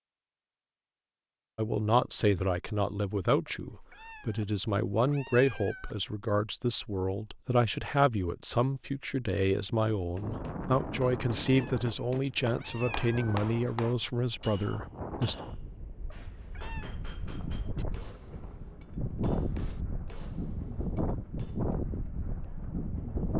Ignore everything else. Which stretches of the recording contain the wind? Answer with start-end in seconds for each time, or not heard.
10.2-23.3.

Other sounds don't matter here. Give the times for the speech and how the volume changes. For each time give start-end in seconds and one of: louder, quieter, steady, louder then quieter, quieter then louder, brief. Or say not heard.
1.6-15.3 steady.